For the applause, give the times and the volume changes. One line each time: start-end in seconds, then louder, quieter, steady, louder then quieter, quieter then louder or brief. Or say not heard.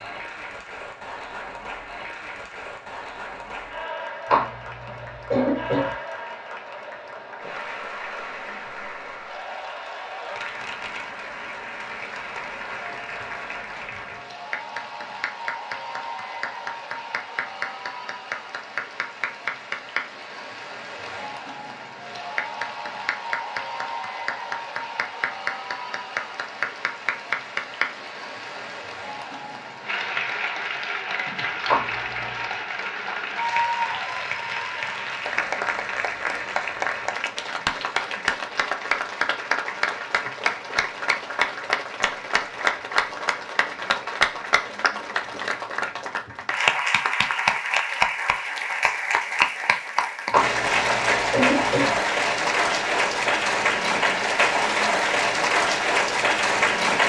0.0-57.0 louder.